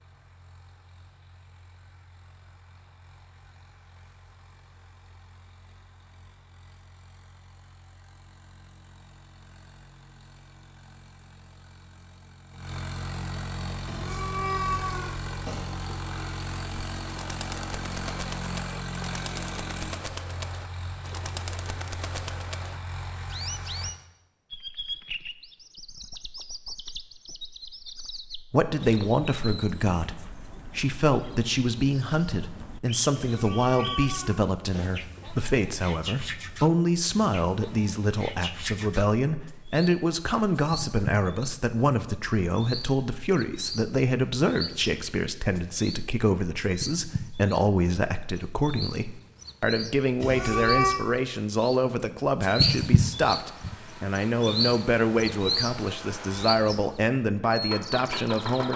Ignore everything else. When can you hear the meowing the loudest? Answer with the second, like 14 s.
51 s.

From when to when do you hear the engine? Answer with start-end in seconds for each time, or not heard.
0.0-23.9, 53.4-58.7.